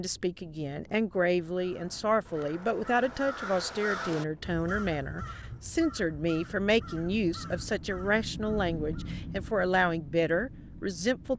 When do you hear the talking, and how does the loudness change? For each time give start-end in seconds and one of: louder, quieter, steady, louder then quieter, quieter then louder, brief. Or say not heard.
0.0-11.3 steady.